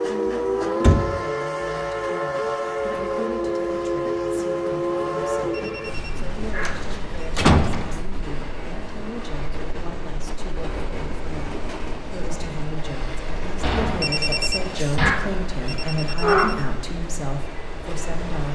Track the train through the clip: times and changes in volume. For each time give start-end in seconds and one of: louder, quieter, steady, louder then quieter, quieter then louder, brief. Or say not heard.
0.0-18.5 quieter.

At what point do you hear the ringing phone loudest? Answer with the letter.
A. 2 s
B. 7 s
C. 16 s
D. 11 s
C.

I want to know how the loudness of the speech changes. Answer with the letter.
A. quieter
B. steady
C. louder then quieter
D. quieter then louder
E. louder
E.